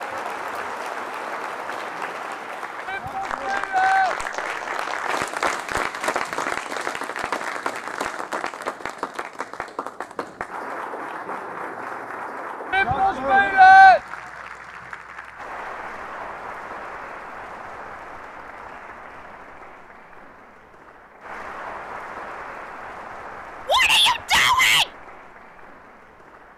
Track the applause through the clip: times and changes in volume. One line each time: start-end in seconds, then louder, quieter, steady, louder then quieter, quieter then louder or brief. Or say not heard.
0.0-26.5 quieter.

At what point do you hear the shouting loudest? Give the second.
14 s.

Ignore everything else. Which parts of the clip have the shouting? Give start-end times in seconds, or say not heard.
2.9-4.2, 12.7-14.0, 23.6-24.9.